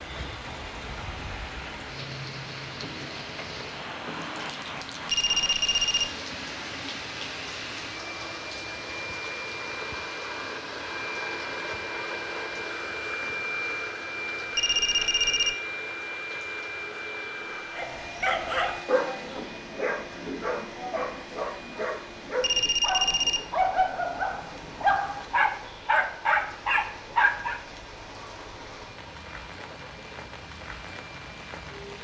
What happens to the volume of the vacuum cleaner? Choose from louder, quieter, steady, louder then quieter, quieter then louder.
louder then quieter.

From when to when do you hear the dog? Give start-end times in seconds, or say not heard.
17.8-27.6.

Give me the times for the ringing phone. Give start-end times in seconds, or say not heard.
5.1-6.1, 14.6-15.6, 22.4-23.4.